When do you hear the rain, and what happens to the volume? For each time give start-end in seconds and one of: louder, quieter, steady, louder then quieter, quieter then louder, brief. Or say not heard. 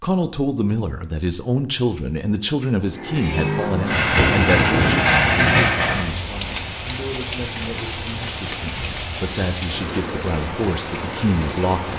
3.8-11.9 steady.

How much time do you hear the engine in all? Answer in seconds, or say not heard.
3 s.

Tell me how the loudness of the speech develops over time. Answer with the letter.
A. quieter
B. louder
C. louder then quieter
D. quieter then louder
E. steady
D.